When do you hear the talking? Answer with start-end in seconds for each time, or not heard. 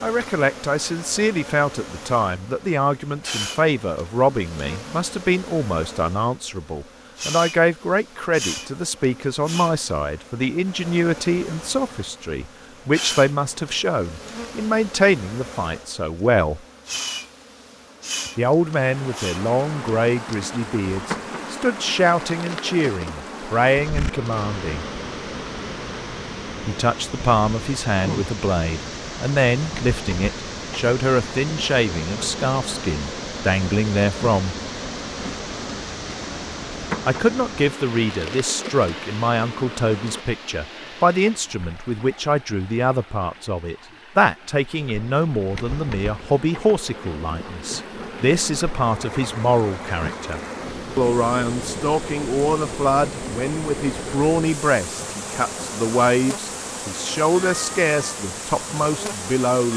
0.0-16.6, 18.4-24.9, 26.6-34.5, 37.0-59.7.